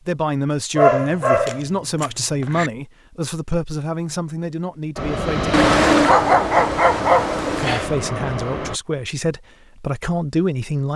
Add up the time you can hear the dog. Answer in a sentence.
You can hear the dog for 4 seconds altogether.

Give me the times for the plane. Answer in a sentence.
You can hear the plane from 5.0 to 8.8 s.